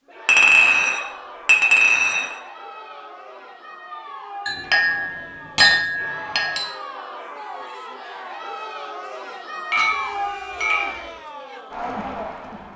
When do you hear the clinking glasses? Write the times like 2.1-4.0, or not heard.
0.2-2.2, 4.5-6.7, 9.7-11.1.